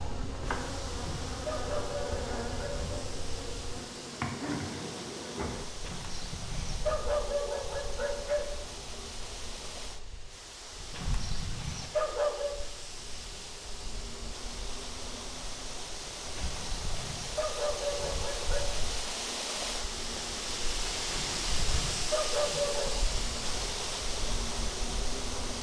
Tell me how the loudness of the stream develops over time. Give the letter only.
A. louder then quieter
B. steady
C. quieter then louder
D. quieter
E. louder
E.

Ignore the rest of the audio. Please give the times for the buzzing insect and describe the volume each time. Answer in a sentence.
You can hear the buzzing insect from 0.0 to 25.5 s, getting quieter then louder.